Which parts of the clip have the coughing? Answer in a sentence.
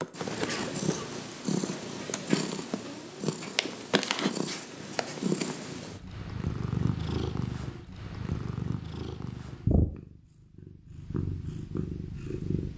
The coughing can be heard from 0.3 to 1.1 s.